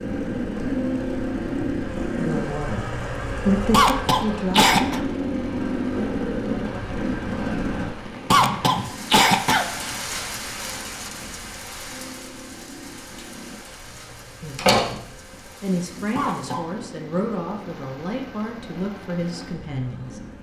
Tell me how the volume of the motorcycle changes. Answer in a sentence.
The volume of the motorcycle goes down.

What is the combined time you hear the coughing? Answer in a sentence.
You can hear the coughing for 3 seconds altogether.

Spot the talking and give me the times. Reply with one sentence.
You can hear the talking from 2.1 to 4.8 s and from 14.4 to 20.2 s.